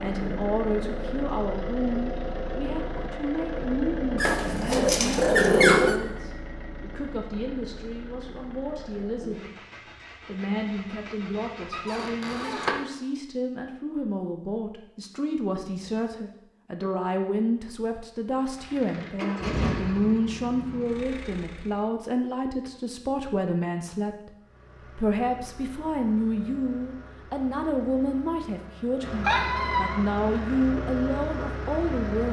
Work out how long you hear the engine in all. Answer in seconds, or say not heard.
24 s.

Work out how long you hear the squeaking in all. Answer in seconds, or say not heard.
4 s.